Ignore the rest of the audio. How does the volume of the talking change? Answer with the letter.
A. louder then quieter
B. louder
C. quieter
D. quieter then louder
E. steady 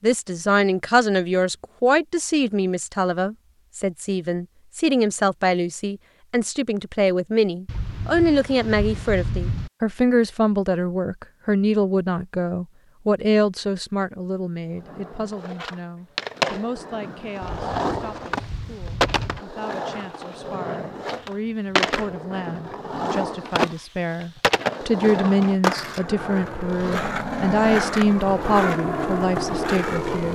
D.